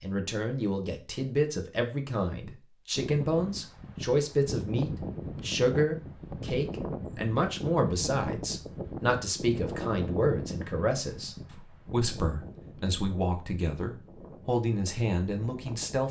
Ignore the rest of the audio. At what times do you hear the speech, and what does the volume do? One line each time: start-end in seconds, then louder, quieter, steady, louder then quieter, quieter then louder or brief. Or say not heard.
0.0-16.0 steady.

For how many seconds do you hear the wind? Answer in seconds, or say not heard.
13 s.